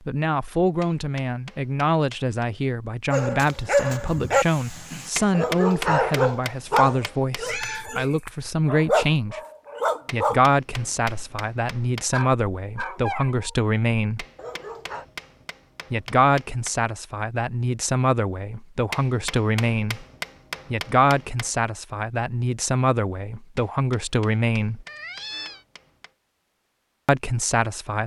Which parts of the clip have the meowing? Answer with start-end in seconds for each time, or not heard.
7.4-8.5, 24.9-25.6.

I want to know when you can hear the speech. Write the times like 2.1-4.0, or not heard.
0.1-9.4, 10.1-14.2, 15.9-20.1, 20.7-24.9, 27.1-28.0.